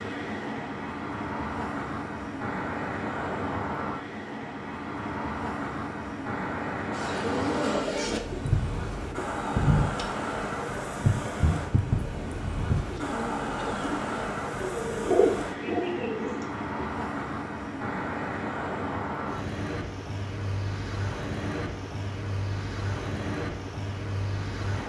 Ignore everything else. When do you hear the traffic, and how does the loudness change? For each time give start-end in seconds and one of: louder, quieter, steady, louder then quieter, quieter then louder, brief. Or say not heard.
0.0-24.8 steady.